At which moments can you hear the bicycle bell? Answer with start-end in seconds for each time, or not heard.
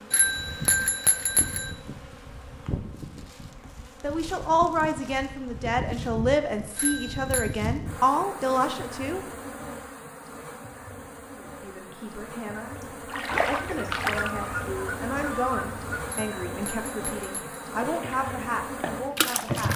0.1-1.7, 6.8-7.5, 16.1-17.6.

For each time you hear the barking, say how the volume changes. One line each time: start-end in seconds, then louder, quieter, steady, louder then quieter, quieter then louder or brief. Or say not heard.
not heard.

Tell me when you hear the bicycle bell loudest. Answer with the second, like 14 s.
1 s.